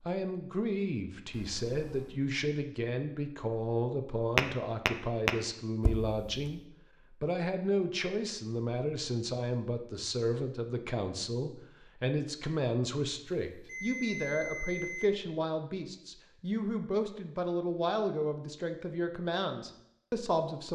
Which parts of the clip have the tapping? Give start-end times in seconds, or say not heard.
4.3-6.5.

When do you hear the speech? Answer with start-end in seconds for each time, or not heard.
0.0-20.6.